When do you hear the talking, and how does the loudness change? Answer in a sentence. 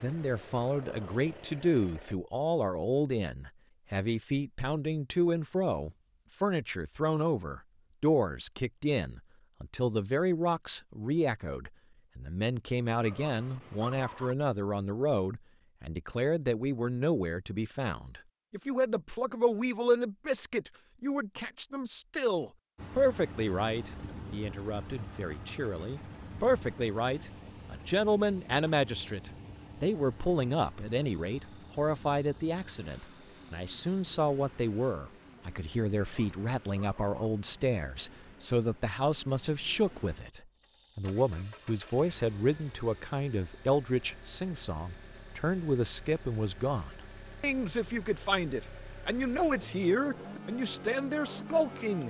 The talking can be heard from 0.0 to 52.0 s, at a steady volume.